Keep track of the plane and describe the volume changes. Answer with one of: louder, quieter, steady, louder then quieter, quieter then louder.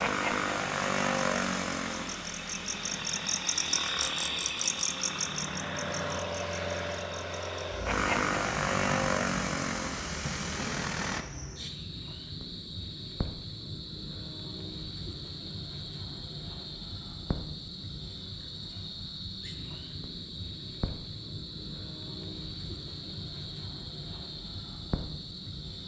quieter then louder.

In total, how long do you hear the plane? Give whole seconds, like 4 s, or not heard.
11 s.